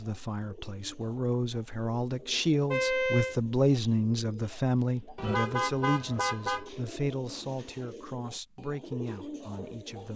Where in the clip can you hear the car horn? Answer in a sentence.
You can hear the car horn from 2.7 to 3.4 s and from 5.2 to 6.7 s.